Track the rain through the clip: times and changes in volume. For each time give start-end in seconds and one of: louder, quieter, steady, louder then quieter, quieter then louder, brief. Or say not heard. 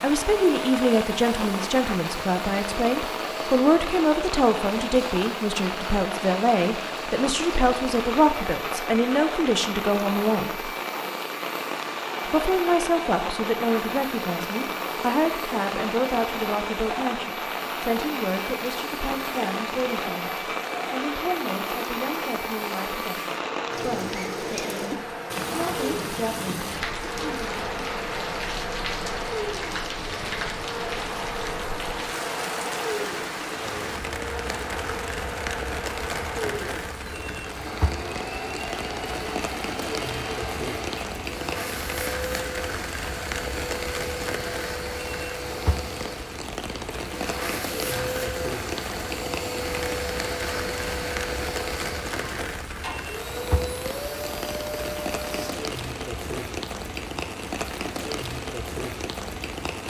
0.0-59.8 steady.